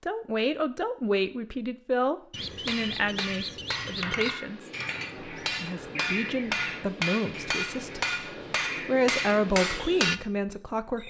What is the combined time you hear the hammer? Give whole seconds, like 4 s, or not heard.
8 s.